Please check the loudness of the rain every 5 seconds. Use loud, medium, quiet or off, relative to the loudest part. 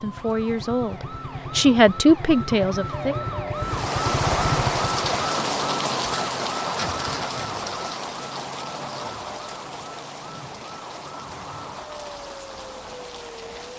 loud, loud, quiet.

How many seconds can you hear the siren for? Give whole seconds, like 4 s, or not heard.
14 s.